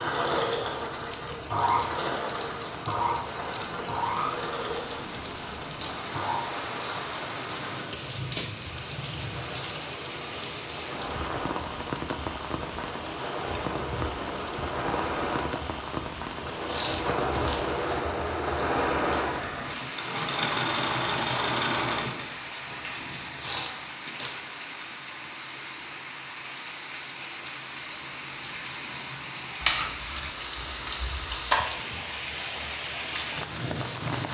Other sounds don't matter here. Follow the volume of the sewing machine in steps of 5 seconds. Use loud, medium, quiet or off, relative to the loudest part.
loud, medium, medium, loud, loud, off, off.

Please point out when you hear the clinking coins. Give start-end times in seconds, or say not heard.
29.6-31.6.